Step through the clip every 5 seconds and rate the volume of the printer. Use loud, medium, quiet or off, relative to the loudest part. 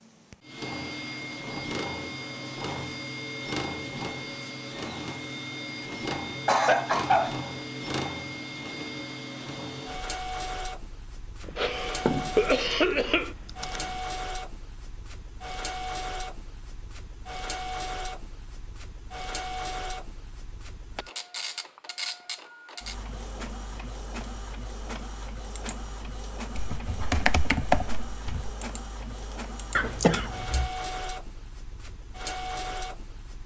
loud, loud, loud, loud, medium, medium, loud.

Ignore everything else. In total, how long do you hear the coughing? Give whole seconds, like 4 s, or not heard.
4 s.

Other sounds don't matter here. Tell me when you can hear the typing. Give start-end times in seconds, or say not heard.
11.4-14.0, 26.6-28.6.